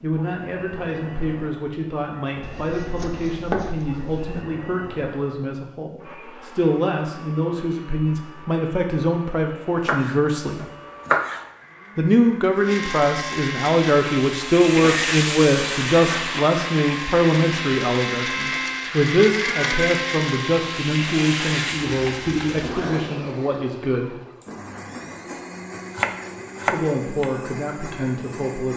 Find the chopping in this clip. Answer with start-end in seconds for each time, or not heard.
2.4-4.5, 9.8-11.4, 25.8-27.2.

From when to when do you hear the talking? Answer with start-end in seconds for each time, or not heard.
0.0-10.7, 11.9-24.1, 26.6-28.7.